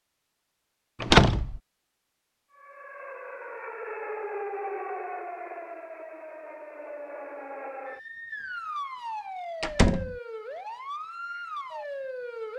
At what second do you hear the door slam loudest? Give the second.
1 s.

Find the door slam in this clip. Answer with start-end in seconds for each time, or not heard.
1.0-1.6, 9.6-10.2.